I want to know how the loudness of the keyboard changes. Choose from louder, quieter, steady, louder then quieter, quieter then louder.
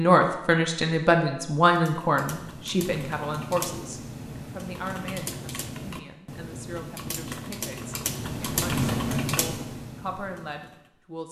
louder.